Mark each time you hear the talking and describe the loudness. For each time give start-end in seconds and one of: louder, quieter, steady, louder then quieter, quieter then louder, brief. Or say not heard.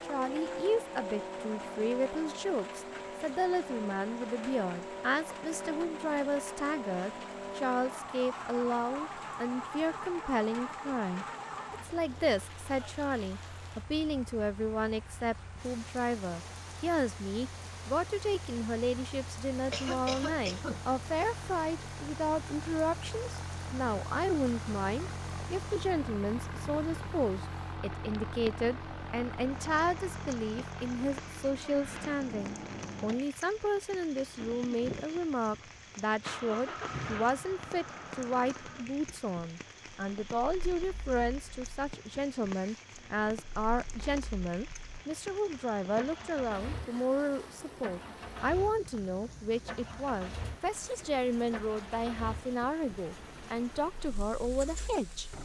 0.0-55.3 steady.